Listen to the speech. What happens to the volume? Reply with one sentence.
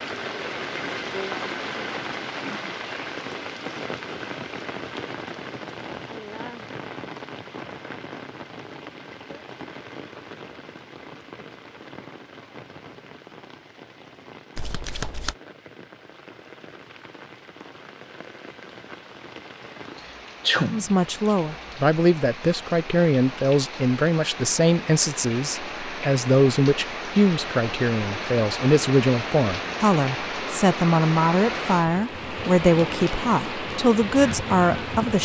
The volume of the speech stays about the same.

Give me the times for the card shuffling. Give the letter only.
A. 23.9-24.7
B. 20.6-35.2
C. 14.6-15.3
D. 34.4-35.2
C.